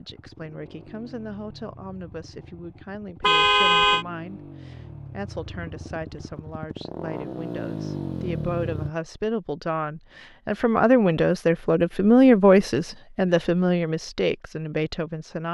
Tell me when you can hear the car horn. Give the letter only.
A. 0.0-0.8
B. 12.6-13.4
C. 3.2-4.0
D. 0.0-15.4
C.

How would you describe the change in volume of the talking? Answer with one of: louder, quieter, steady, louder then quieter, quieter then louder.
louder.